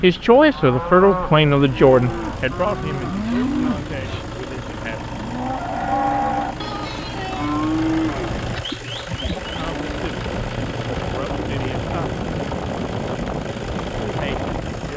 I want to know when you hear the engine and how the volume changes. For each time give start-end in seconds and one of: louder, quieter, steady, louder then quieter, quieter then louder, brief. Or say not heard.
0.0-14.9 louder.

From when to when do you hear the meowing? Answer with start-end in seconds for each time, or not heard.
not heard.